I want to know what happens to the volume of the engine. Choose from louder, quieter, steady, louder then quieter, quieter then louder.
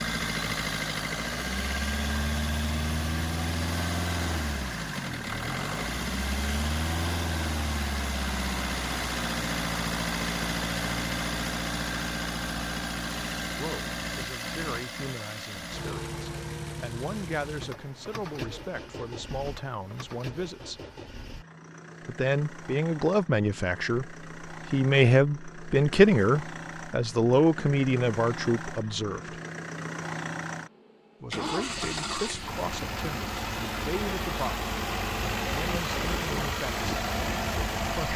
quieter then louder.